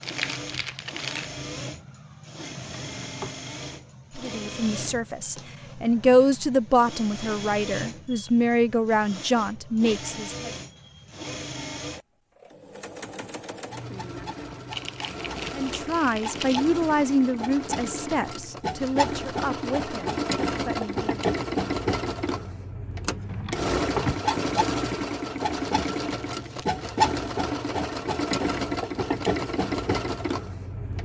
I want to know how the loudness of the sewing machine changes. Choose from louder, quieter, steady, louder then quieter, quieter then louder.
louder.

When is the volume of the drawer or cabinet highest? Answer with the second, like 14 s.
24 s.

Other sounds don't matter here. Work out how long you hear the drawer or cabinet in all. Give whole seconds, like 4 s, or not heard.
2 s.